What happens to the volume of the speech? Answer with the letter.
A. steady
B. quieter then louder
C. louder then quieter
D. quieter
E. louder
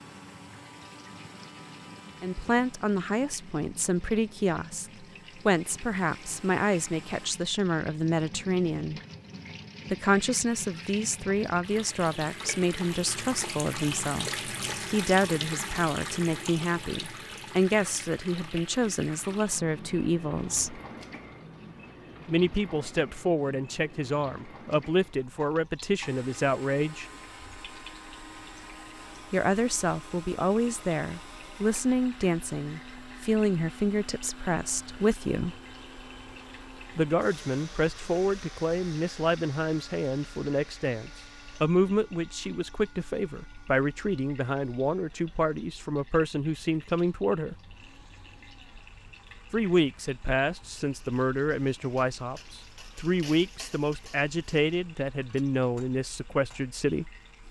A.